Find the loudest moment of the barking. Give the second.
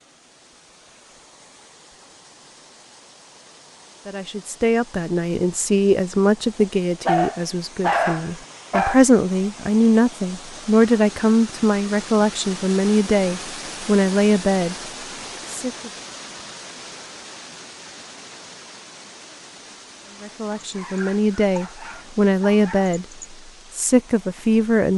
8 s.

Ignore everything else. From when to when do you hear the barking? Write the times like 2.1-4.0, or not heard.
6.5-9.0, 20.5-23.2.